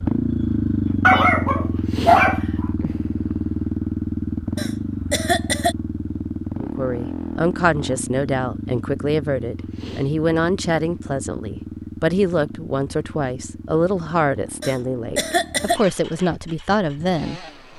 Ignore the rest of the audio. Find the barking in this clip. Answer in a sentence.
The barking can be heard from 1.0 to 2.4 s.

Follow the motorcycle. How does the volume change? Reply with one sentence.
The loudness of the motorcycle goes down.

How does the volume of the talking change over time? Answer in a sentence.
The loudness of the talking stays about the same.